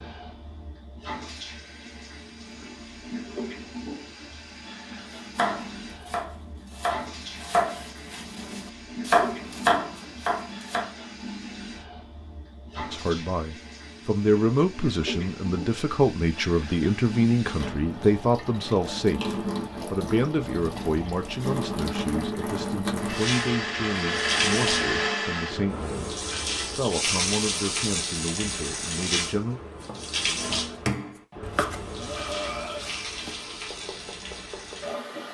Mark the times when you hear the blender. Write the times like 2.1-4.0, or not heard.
22.9-25.6.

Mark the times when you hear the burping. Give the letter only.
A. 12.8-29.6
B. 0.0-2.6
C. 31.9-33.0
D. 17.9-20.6
C.